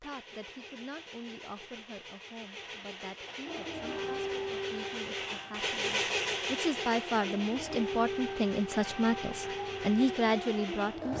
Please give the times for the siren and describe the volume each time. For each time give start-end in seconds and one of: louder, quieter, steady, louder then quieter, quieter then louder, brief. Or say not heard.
3.5-11.1 quieter then louder.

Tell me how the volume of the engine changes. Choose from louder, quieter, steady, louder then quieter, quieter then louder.
louder then quieter.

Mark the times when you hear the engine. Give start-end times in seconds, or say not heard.
0.0-11.1.